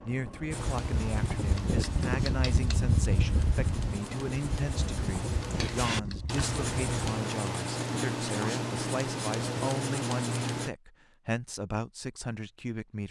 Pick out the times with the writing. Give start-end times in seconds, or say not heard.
0.5-10.7.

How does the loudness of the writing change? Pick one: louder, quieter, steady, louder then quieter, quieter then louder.
louder.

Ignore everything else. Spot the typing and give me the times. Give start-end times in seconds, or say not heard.
not heard.